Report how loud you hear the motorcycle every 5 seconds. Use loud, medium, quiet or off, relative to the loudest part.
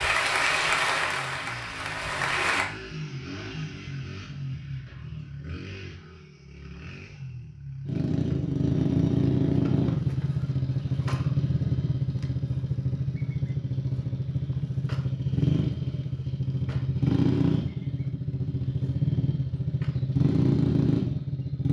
quiet, loud, loud, loud, loud.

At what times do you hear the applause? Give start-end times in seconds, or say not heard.
0.0-2.7.